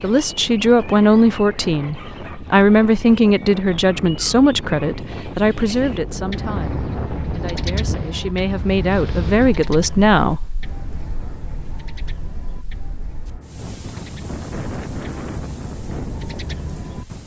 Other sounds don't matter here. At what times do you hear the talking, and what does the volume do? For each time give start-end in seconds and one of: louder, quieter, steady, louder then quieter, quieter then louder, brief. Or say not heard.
0.0-10.6 quieter then louder.